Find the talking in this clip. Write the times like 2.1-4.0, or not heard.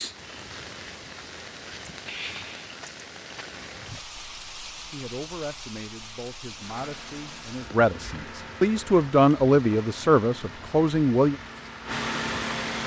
4.9-11.3.